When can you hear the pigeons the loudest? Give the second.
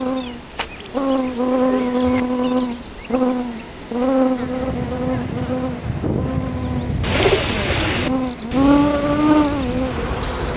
7 s.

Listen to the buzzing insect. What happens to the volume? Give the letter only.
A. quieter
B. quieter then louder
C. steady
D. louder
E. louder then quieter
B.